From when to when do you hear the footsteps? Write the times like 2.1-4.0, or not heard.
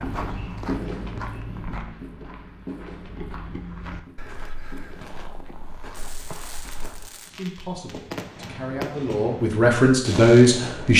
0.0-7.1.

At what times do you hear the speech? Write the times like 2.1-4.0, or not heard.
7.3-10.9.